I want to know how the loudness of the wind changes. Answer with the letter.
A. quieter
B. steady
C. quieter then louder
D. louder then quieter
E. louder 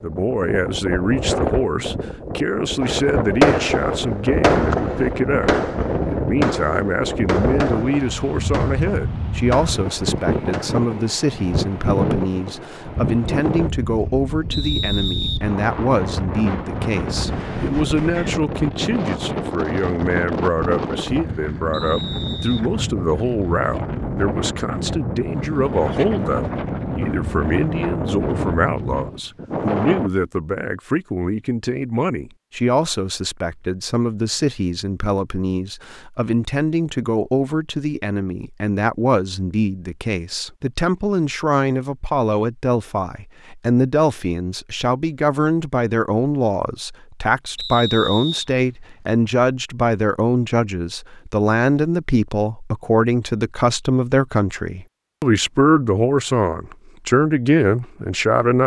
B.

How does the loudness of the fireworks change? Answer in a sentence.
The loudness of the fireworks goes down.